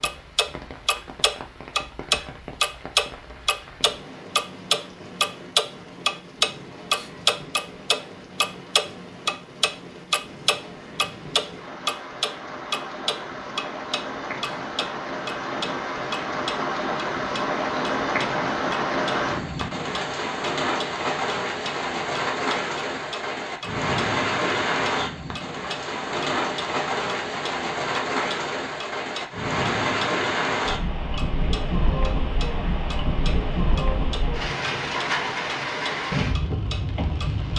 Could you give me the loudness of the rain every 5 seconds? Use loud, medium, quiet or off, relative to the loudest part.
quiet, quiet, medium, loud, loud, loud, loud, loud.